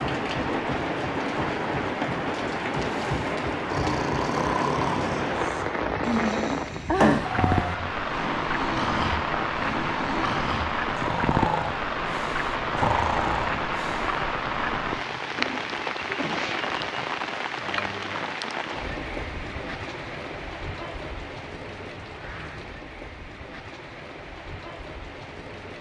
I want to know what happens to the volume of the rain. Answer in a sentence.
The volume of the rain goes down.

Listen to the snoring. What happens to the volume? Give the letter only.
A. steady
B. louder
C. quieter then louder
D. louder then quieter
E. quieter
A.